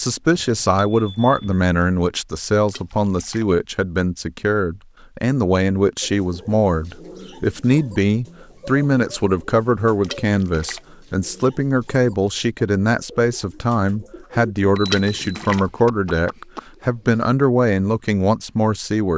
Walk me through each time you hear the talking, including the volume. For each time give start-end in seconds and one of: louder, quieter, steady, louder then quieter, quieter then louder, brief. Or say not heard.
0.0-19.1 steady.